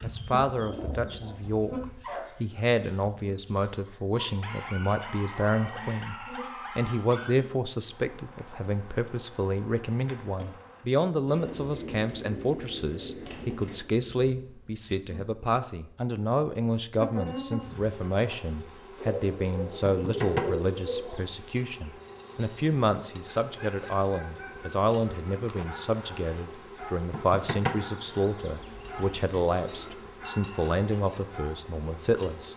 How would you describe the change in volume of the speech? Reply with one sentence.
The loudness of the speech stays about the same.